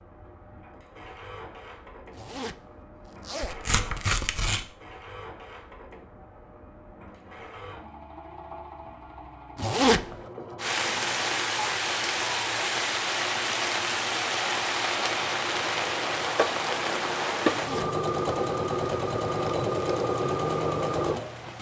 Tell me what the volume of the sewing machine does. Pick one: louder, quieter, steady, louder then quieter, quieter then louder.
louder.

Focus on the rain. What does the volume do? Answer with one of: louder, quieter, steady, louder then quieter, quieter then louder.
quieter.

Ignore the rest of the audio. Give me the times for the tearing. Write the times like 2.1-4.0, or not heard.
3.5-4.7.